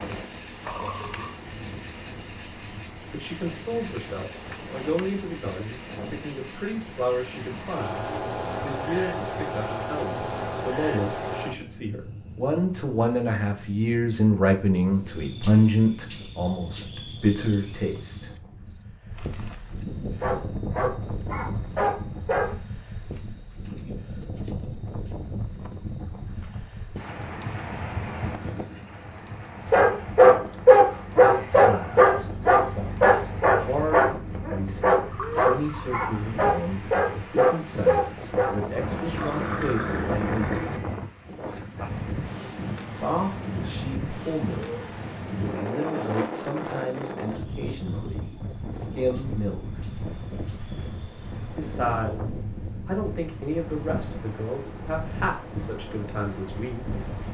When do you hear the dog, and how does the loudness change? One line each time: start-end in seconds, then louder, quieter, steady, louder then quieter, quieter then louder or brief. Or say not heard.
20.1-22.6 brief
29.6-38.8 quieter.